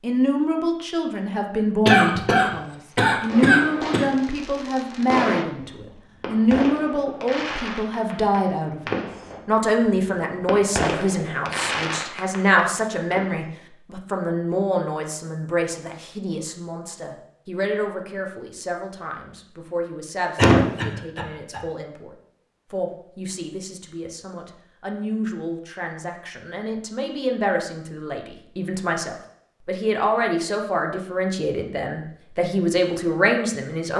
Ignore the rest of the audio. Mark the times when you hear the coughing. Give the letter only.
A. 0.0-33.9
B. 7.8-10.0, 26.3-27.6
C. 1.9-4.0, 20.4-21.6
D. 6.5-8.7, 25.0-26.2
C.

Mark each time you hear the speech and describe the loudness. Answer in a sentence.
You can hear the speech from 0.0 to 33.9 s, getting quieter then louder.